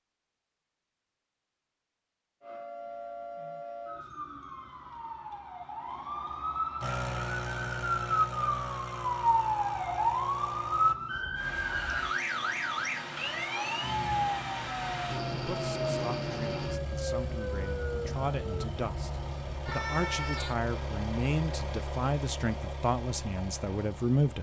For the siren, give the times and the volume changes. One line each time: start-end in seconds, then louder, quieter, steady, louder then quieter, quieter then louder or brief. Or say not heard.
2.4-20.6 louder then quieter.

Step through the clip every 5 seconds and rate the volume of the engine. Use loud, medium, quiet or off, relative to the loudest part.
off, loud, loud, loud, loud.